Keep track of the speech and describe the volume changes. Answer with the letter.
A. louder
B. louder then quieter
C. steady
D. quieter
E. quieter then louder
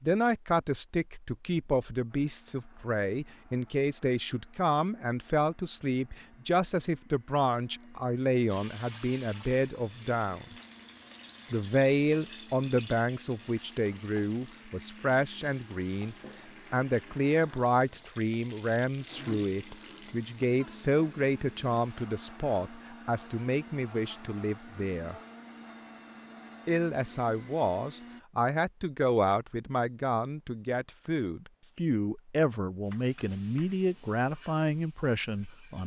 C.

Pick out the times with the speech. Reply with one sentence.
The speech can be heard from 0.0 to 10.6 s, from 11.5 to 25.1 s and from 26.6 to 35.8 s.